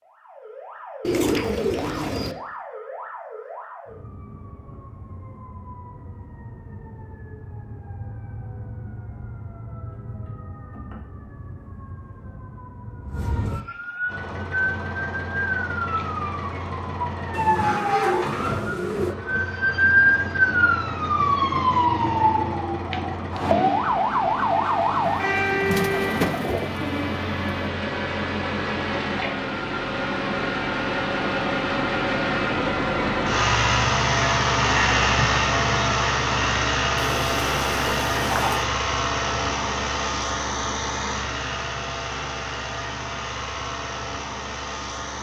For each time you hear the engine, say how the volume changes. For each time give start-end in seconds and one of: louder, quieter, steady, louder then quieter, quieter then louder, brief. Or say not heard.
14.1-45.1 louder then quieter.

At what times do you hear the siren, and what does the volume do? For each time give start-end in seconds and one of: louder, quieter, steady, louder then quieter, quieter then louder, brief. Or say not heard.
0.0-26.4 louder.